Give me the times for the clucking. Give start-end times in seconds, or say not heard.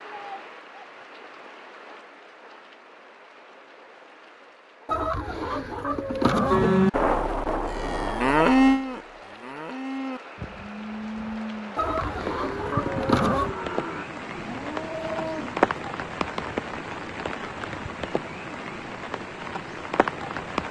4.8-6.7, 11.8-13.6.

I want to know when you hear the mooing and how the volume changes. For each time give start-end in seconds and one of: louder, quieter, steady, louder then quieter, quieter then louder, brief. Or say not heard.
6.5-15.7 quieter.